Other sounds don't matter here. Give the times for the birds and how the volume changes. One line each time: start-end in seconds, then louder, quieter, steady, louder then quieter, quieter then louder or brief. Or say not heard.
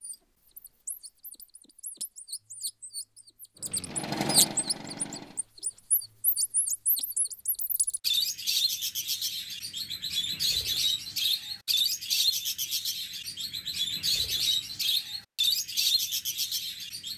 0.0-17.1 louder.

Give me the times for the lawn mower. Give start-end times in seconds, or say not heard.
3.5-5.5.